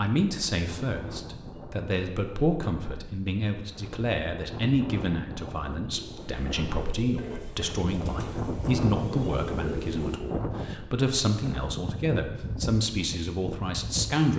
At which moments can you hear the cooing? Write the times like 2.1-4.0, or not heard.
5.9-10.2.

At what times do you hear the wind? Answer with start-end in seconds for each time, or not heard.
0.2-14.3.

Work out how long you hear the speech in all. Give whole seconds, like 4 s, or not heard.
14 s.